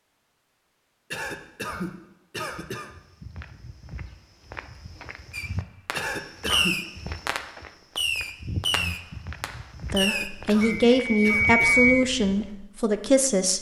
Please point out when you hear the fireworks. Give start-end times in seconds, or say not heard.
5.3-10.3.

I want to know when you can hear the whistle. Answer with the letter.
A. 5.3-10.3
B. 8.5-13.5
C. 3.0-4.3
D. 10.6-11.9
D.